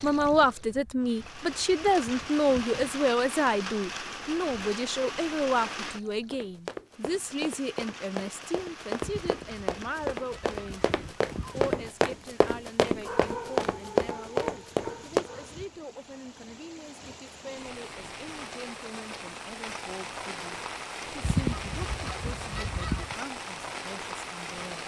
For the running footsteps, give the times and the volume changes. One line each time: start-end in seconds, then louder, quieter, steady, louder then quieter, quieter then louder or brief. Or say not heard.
6.3-15.3 louder.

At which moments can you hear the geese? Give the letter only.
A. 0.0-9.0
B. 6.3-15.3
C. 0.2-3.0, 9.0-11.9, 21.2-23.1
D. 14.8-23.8
C.